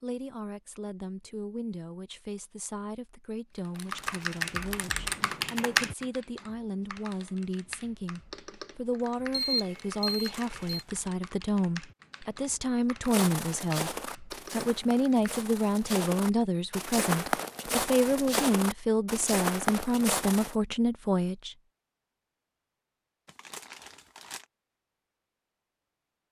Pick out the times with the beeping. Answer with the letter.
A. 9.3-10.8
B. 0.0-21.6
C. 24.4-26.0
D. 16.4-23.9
A.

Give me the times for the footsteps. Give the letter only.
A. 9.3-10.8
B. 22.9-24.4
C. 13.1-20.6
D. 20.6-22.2
C.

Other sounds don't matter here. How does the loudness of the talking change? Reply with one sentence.
The loudness of the talking goes up.